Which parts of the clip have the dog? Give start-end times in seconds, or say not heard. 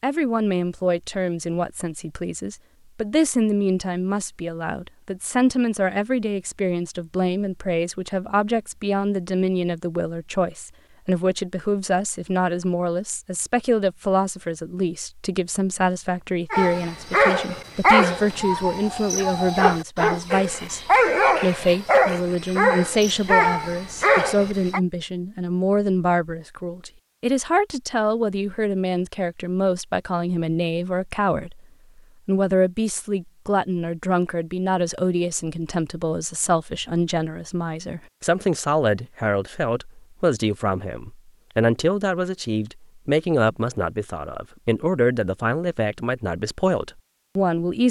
16.5-24.8.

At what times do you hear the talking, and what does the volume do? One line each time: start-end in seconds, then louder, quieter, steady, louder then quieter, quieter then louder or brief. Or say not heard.
0.0-31.6 steady
32.2-47.8 steady.